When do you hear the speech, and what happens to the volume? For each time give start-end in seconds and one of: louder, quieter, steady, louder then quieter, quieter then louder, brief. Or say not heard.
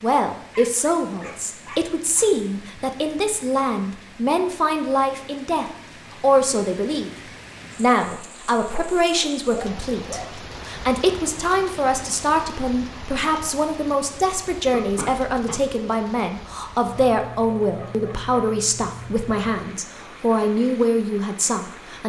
0.0-22.0 steady.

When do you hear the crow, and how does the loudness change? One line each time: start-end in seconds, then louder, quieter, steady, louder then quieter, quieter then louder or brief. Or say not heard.
not heard.